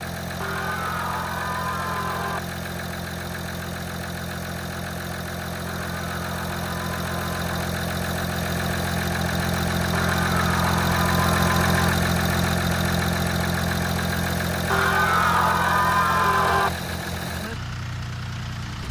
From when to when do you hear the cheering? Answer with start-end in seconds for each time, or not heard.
0.4-2.4, 5.7-7.6, 9.9-11.9, 14.7-16.7.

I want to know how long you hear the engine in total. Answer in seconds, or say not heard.
19 s.